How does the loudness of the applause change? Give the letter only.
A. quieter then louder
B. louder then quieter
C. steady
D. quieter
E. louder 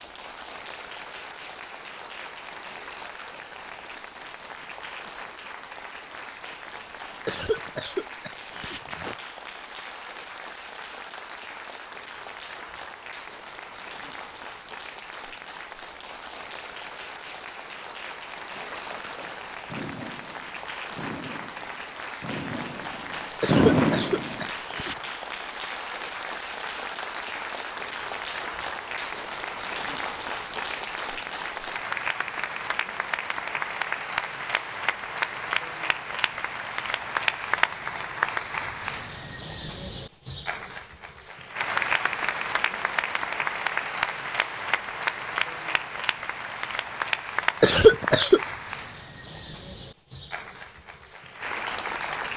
E.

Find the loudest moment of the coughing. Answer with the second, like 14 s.
48 s.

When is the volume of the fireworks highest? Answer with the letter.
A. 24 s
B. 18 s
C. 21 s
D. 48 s
A.